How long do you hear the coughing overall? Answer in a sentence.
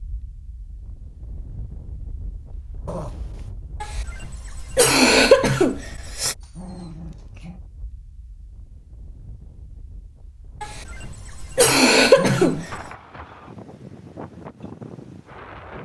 You can hear the coughing for 5 seconds altogether.